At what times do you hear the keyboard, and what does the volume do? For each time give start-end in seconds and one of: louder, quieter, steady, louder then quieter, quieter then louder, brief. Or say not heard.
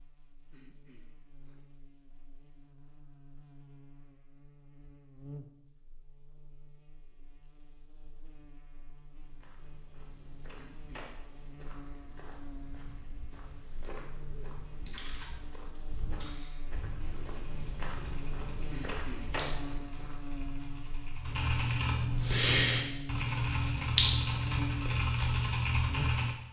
14.8-26.3 louder.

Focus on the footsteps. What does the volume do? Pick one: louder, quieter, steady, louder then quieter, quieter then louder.
louder.